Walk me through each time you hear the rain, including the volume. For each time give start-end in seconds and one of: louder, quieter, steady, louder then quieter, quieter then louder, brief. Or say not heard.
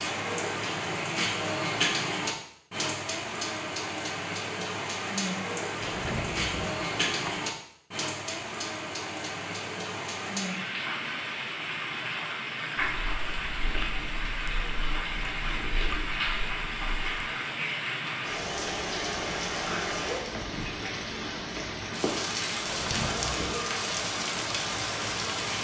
0.0-25.6 steady.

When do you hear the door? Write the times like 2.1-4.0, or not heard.
5.8-7.4, 22.6-23.6.